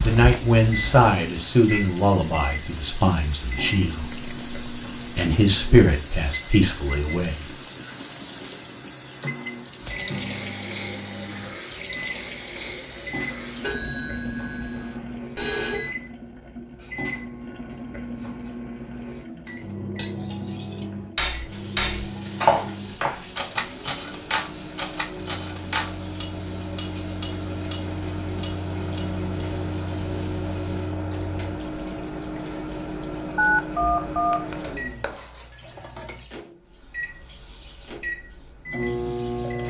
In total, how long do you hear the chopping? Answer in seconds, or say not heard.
2 s.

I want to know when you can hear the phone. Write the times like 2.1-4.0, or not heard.
13.6-15.9, 33.4-34.4.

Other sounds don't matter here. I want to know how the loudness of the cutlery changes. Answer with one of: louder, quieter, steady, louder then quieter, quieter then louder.
louder then quieter.